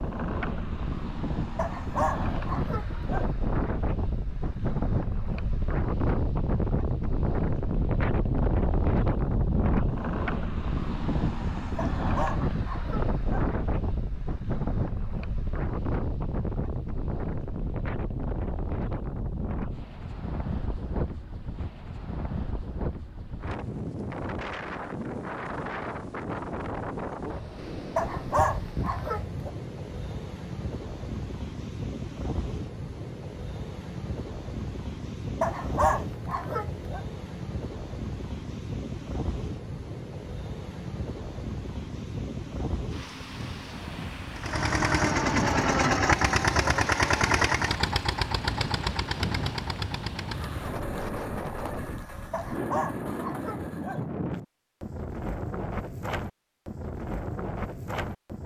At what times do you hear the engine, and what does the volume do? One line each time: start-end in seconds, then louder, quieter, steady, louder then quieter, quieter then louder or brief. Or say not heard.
44.4-54.0 quieter.